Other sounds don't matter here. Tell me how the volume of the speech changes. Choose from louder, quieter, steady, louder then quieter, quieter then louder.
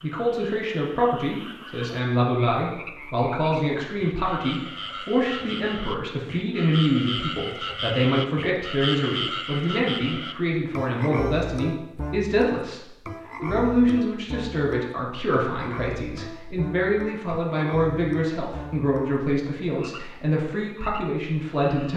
steady.